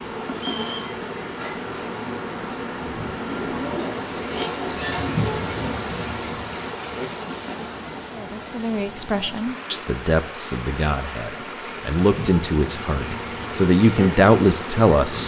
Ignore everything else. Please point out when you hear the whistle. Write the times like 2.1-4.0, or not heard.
0.3-0.9.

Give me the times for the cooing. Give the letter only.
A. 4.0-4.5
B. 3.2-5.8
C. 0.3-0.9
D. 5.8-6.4
B.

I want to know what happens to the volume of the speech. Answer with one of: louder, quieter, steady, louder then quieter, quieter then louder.
louder.